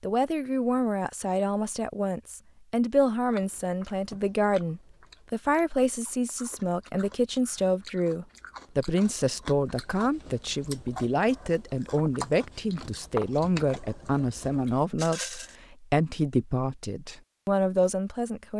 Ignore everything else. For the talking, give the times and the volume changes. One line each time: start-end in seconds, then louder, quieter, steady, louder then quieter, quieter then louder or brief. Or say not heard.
0.0-18.5 steady.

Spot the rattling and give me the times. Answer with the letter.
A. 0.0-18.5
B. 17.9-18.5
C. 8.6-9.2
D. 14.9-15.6
D.